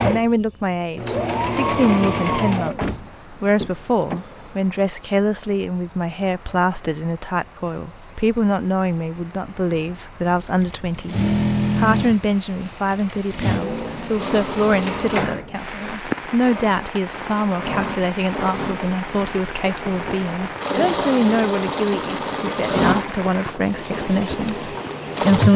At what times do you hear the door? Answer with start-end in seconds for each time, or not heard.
2.8-4.7, 14.8-15.6.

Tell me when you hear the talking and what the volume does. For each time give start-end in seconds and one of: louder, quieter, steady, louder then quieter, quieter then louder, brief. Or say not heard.
0.0-25.5 steady.